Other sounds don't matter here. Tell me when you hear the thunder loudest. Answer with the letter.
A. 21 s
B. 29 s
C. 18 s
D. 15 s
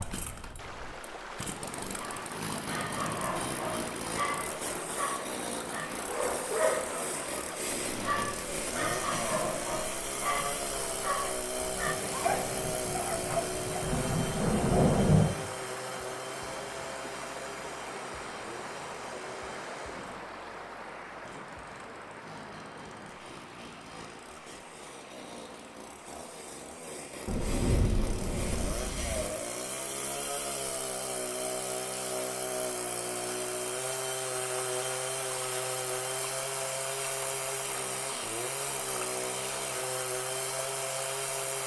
D.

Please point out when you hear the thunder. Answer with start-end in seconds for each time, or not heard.
12.3-15.2, 27.2-29.2.